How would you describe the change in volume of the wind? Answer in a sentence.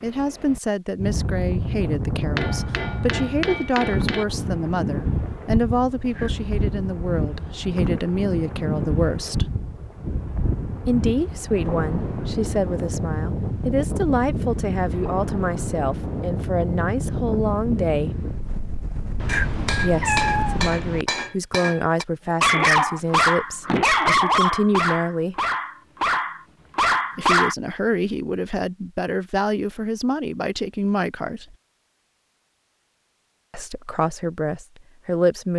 The volume of the wind stays about the same.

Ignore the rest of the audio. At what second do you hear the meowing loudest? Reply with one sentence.
The loudest moment of the meowing is at 20 seconds.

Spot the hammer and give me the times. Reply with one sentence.
You can hear the hammer from 2.4 to 4.2 s and from 19.2 to 22.1 s.